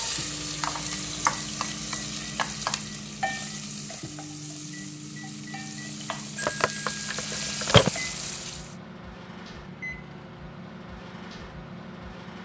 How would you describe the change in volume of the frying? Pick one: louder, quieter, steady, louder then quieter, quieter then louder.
quieter then louder.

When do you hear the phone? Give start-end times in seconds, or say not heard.
6.3-7.9.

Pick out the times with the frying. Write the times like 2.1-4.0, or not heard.
0.0-8.8.